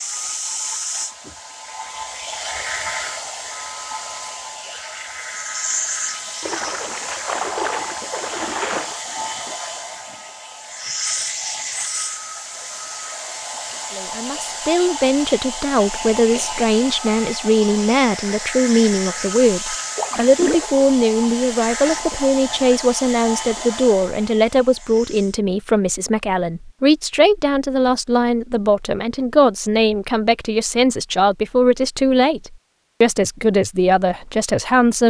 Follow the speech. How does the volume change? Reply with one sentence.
The loudness of the speech stays about the same.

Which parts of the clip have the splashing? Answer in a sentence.
You can hear the splashing from 6.4 to 9.0 s and from 19.9 to 20.9 s.